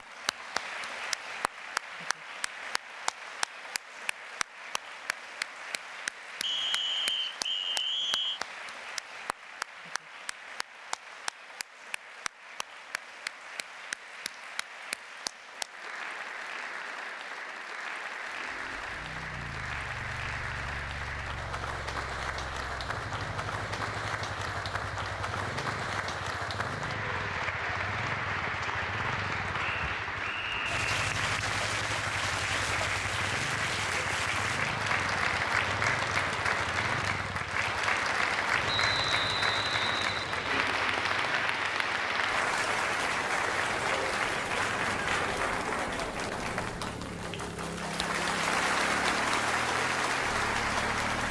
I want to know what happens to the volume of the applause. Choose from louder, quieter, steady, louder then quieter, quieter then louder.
louder.